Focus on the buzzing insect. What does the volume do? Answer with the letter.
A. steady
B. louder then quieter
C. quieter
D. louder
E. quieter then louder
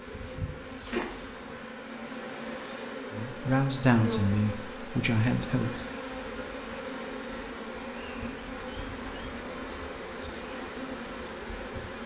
A.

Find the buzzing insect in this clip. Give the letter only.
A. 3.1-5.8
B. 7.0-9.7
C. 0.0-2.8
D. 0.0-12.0
D.